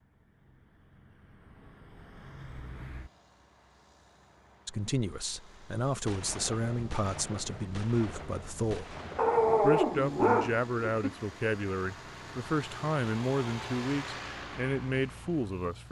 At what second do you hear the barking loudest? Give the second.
10 s.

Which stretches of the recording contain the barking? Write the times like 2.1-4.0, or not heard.
9.2-11.2.